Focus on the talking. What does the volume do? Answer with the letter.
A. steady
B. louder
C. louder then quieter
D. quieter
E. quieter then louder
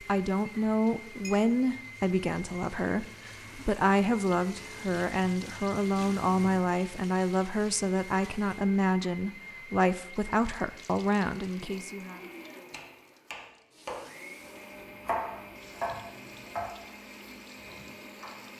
A.